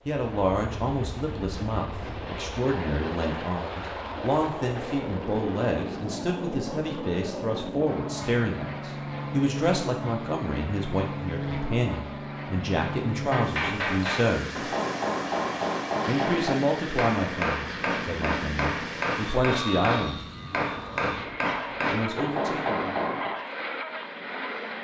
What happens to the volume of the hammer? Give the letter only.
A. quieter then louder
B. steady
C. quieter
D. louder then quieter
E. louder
B.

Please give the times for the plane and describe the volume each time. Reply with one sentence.
You can hear the plane from 0.0 to 24.7 s, at a steady volume.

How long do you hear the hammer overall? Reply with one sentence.
You can hear the hammer for 10 seconds altogether.